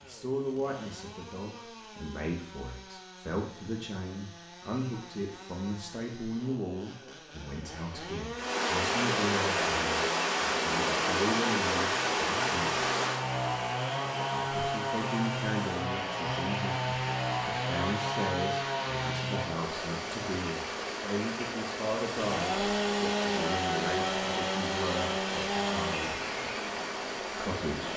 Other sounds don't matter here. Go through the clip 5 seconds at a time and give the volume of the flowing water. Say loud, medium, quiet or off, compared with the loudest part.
off, loud, loud, medium, medium, medium.